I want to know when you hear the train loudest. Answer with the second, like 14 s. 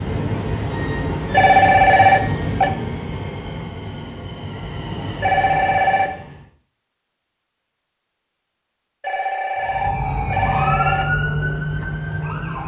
2 s.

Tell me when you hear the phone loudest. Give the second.
2 s.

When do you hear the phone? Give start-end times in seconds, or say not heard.
1.3-2.7, 5.2-6.1, 9.0-11.1.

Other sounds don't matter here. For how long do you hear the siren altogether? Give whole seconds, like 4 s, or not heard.
3 s.